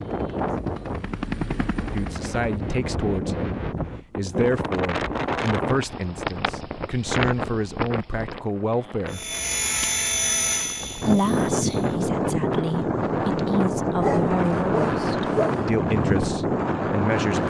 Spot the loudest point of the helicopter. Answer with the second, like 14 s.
10 s.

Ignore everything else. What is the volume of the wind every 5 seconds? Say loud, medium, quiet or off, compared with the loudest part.
medium, medium, loud, loud.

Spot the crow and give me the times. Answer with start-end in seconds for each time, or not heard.
not heard.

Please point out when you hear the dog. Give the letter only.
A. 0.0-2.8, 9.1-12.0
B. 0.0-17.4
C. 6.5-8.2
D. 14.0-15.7
D.